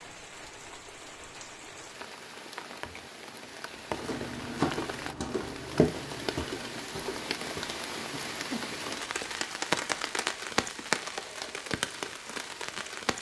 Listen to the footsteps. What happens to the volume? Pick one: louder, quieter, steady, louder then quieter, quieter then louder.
quieter.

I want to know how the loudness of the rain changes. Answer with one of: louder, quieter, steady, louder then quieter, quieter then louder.
louder.